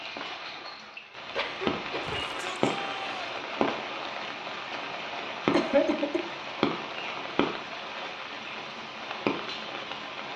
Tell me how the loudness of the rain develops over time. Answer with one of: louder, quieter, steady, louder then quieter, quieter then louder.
steady.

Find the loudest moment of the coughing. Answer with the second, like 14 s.
6 s.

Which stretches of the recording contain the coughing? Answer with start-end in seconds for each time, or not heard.
1.4-2.2, 5.5-6.2.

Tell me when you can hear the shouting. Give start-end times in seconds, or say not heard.
2.0-3.4.